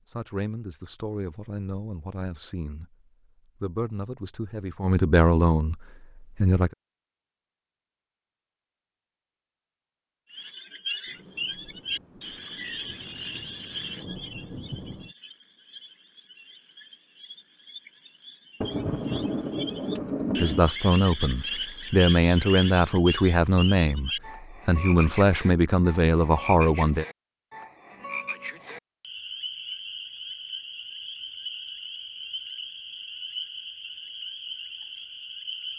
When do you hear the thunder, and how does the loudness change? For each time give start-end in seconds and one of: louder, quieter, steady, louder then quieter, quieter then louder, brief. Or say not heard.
11.1-15.2 louder
18.6-20.6 brief.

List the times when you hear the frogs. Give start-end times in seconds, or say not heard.
10.3-35.7.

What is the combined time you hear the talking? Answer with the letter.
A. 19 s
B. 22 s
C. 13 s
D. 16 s
C.